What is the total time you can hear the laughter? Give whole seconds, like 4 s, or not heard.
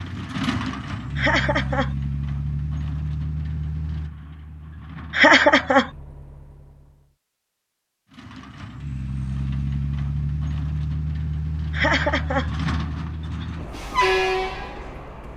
2 s.